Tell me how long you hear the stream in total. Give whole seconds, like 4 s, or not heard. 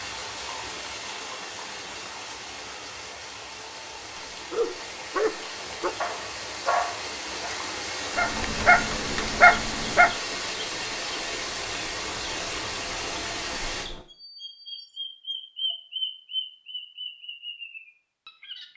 14 s.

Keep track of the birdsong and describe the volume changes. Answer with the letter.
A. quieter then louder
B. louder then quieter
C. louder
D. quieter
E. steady
B.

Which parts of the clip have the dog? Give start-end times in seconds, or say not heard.
4.1-10.2.